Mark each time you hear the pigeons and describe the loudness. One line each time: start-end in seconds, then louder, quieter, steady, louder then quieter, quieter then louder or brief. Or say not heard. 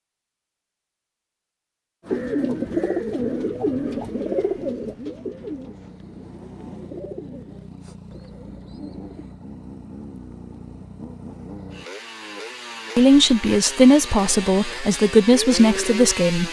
2.0-9.2 quieter.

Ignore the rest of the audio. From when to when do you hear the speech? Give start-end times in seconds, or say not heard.
12.9-16.4.